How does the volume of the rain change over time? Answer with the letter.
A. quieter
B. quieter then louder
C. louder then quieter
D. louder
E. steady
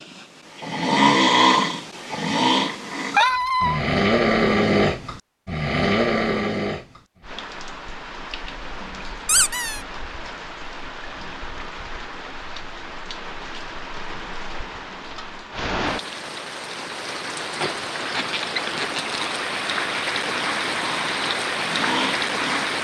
D.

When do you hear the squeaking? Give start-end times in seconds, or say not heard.
3.1-3.8, 9.2-9.8, 18.1-19.2.